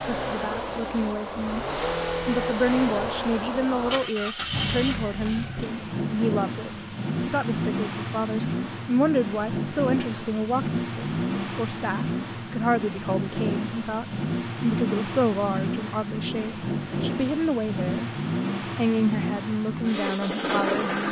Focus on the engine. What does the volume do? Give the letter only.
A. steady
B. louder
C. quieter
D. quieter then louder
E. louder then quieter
A.